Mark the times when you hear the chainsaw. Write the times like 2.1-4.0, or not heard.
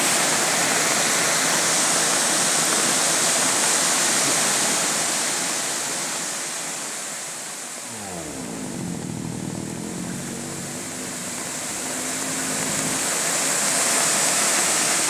7.8-13.2.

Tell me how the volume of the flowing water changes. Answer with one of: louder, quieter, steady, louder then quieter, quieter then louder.
quieter then louder.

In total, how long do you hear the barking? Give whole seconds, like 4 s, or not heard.
not heard.